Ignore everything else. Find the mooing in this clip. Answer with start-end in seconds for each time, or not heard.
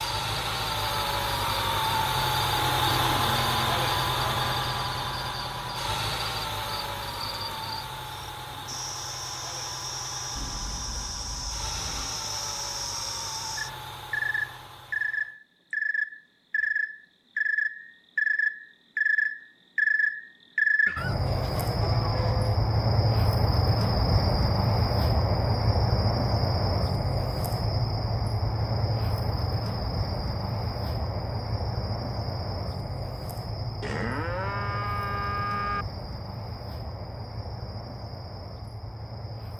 2.5-4.5, 10.3-12.2, 20.9-22.6, 33.8-35.9.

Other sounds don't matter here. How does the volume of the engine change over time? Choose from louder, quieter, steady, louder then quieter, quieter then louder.
quieter.